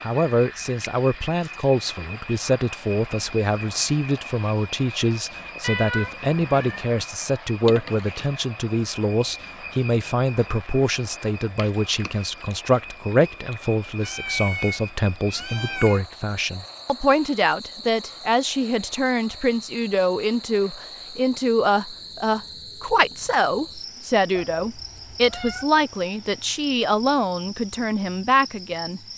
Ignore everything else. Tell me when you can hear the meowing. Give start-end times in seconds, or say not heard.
5.6-6.8, 14.0-16.1, 24.4-25.7.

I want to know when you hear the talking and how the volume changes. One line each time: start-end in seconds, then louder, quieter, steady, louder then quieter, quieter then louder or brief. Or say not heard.
0.0-29.0 steady.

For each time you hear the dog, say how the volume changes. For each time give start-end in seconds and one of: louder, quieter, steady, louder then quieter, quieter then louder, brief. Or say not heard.
not heard.